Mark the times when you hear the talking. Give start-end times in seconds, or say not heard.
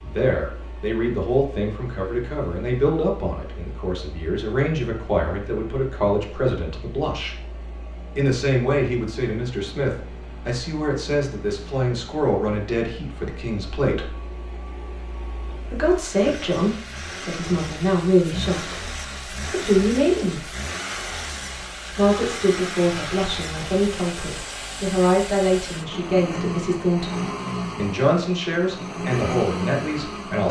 0.0-7.3, 8.2-14.2, 15.7-18.8, 19.5-20.4, 21.9-30.4.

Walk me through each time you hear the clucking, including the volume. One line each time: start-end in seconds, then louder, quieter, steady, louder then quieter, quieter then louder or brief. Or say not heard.
not heard.